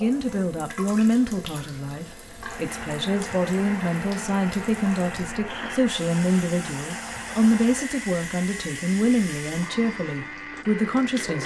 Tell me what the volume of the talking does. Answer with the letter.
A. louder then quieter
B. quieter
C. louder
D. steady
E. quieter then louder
D.